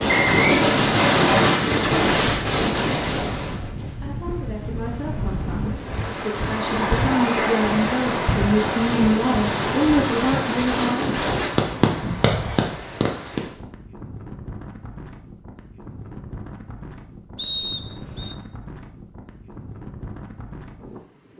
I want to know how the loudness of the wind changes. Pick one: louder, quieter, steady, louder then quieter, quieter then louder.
louder then quieter.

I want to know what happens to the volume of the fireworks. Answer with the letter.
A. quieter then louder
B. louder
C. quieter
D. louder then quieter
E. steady
A.